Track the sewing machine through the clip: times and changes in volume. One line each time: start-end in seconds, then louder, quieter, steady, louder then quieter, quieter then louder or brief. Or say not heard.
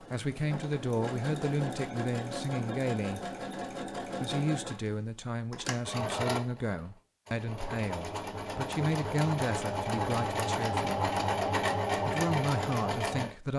0.0-13.5 louder.